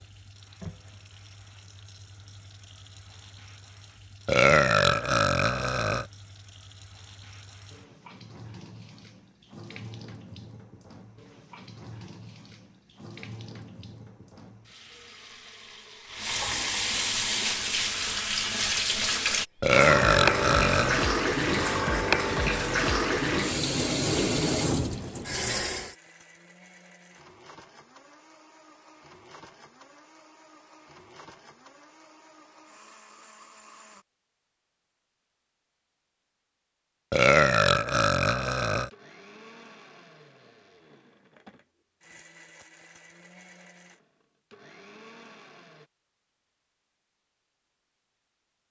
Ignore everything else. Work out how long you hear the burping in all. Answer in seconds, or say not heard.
5 s.